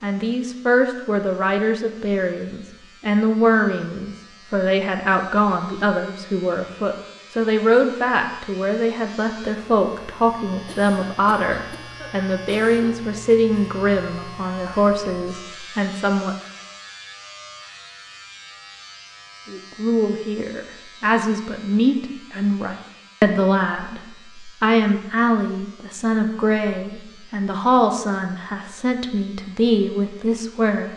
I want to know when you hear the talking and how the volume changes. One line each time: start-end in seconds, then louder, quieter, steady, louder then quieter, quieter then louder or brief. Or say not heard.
0.0-16.4 steady
19.4-30.9 steady.